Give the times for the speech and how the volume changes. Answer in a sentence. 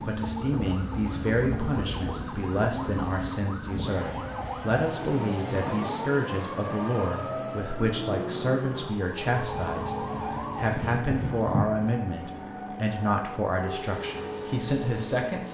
You can hear the speech from 0.0 to 15.4 s, at a steady volume.